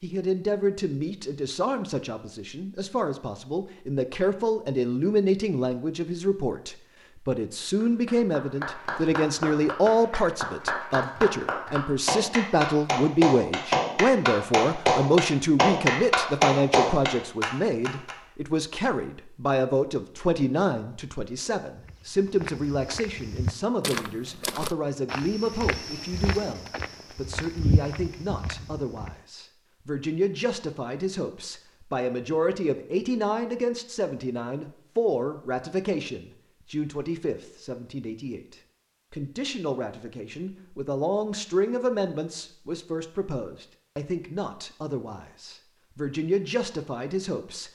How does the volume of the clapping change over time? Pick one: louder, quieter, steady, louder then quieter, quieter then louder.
louder.